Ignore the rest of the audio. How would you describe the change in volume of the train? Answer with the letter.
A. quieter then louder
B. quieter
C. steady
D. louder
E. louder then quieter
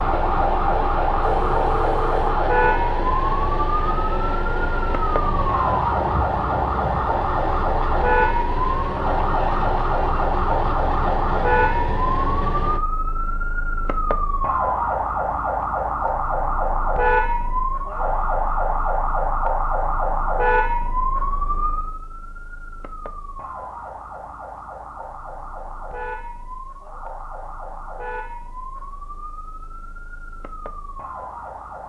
C.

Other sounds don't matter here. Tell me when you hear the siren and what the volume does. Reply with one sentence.
The siren can be heard from 0.0 to 31.8 s, getting quieter.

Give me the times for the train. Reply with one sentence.
The train can be heard from 0.0 to 12.8 s.